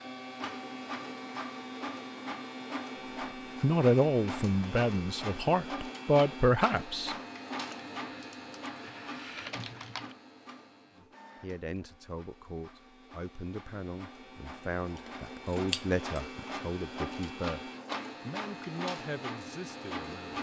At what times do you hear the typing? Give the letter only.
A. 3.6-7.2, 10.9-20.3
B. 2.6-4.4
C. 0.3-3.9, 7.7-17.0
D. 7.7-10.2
D.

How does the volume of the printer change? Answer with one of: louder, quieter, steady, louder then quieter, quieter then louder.
quieter then louder.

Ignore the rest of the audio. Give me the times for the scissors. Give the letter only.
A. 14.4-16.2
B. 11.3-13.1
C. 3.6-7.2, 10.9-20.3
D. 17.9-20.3
A.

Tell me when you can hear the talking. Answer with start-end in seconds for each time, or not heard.
3.6-7.2, 10.9-20.3.